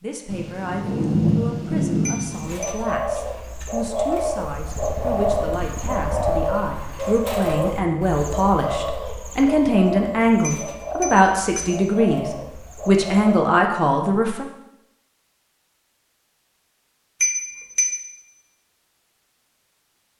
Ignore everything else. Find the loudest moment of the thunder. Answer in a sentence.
The loudest moment of the thunder is at 1 second.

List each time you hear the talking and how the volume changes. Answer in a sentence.
You can hear the talking from 0.0 to 14.4 s, getting louder.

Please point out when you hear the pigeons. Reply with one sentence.
You can hear the pigeons from 2.3 to 13.4 s.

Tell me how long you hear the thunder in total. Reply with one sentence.
The thunder can be heard for 2 seconds in total.